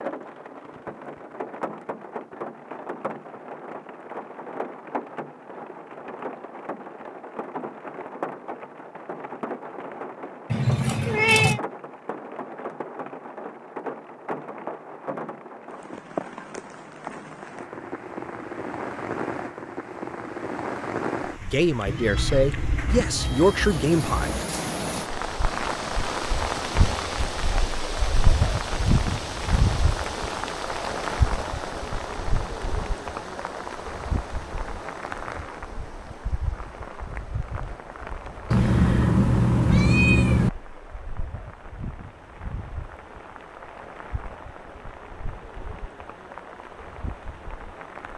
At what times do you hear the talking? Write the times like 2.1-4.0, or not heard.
21.4-24.4.